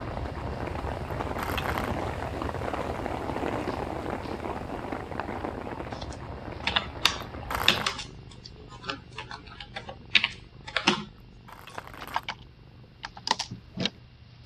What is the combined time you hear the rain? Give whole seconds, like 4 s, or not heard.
8 s.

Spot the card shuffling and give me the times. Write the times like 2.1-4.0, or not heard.
1.2-1.9, 7.3-8.0, 11.3-12.3.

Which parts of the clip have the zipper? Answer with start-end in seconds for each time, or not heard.
not heard.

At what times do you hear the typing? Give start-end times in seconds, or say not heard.
6.0-13.9.